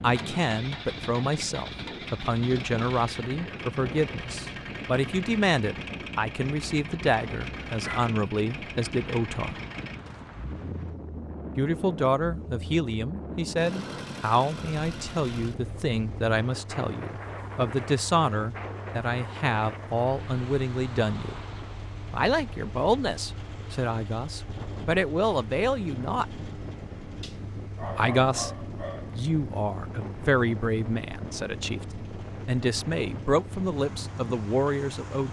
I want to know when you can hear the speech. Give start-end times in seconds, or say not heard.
0.0-9.6, 11.6-21.4, 22.1-26.2, 27.9-31.9, 32.5-35.2.